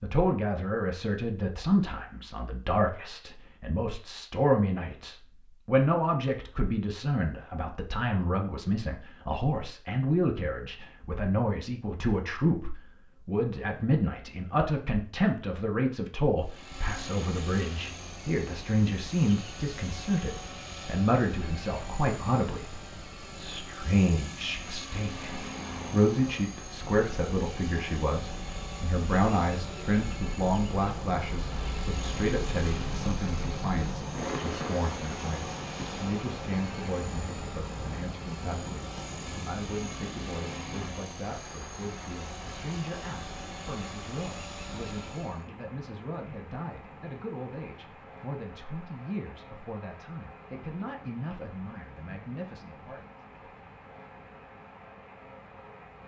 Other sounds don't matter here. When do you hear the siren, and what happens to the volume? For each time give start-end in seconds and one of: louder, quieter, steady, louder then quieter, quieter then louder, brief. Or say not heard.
not heard.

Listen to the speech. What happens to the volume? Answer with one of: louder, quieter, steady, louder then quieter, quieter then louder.
quieter.